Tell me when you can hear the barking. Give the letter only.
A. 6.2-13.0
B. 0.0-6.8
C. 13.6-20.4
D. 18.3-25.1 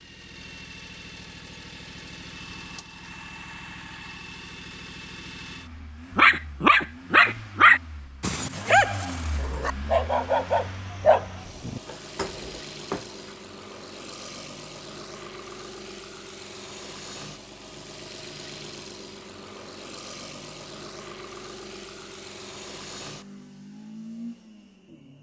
A.